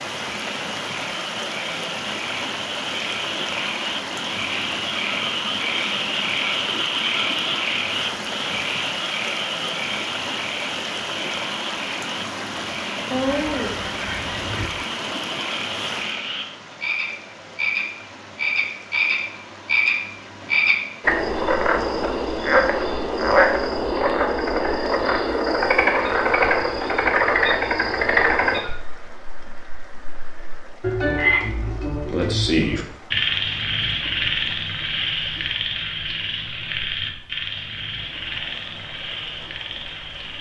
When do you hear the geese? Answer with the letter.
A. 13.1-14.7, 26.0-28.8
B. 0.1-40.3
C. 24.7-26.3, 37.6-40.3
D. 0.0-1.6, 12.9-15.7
A.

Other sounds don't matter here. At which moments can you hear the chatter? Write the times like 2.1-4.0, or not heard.
not heard.